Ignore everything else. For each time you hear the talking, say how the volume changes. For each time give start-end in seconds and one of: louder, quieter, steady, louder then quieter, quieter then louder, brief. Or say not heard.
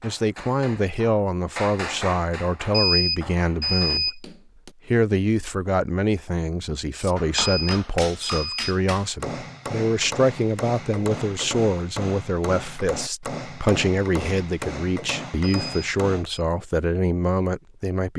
0.0-18.1 steady.